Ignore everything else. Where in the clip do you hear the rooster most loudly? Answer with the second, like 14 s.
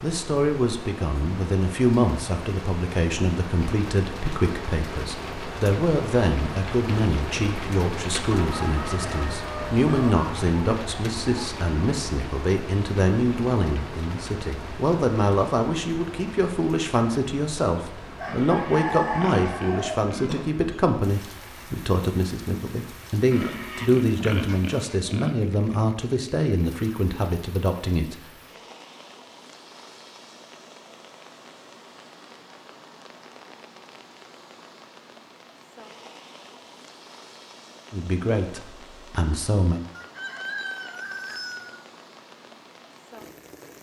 19 s.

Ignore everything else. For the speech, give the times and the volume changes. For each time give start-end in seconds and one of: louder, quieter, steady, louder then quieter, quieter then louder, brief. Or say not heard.
0.0-28.2 steady
37.9-39.8 brief.